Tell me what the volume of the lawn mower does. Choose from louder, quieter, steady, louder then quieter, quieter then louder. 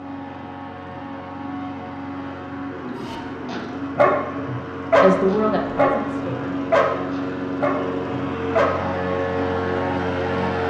louder.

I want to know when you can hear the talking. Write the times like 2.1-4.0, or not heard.
5.0-6.5.